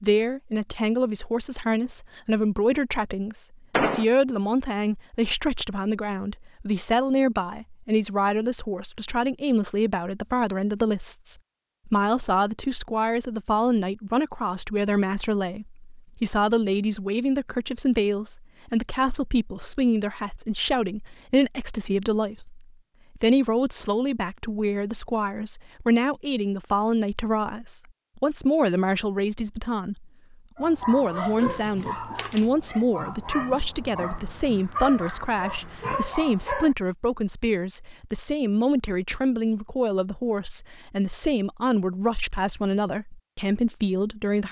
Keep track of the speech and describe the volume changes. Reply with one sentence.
The loudness of the speech stays about the same.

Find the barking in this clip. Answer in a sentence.
You can hear the barking from 30.6 to 36.8 s.